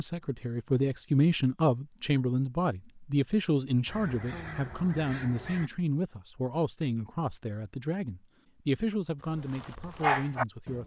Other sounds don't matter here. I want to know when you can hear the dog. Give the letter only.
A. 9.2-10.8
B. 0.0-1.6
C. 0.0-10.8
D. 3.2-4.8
A.